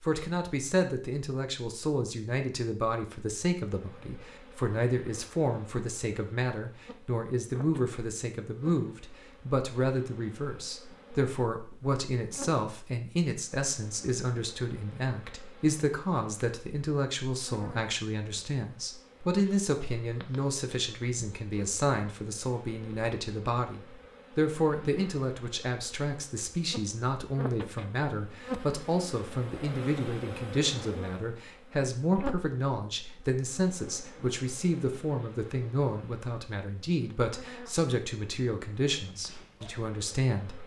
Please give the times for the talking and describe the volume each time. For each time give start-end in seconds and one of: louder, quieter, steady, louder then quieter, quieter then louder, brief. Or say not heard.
0.0-40.6 steady.